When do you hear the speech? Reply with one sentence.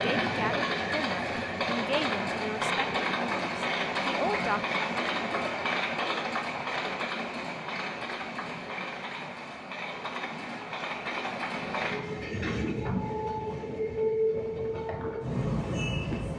You can hear the speech from 0.0 to 4.7 s.